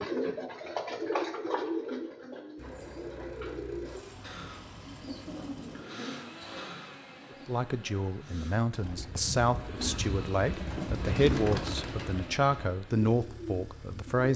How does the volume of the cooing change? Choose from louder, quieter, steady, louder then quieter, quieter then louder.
quieter then louder.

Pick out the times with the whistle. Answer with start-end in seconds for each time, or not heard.
not heard.